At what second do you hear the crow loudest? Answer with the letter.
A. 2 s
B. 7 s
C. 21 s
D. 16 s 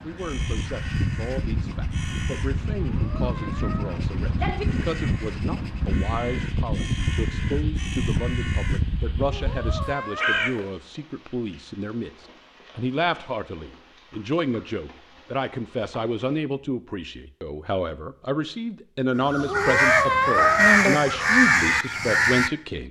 C.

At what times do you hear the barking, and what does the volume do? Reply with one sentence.
You can't hear the barking here.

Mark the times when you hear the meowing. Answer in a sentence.
The meowing can be heard from 2.8 to 4.7 s, from 9.2 to 10.5 s and from 19.4 to 20.8 s.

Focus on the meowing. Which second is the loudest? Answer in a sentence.
The loudest moment of the meowing is at 20 seconds.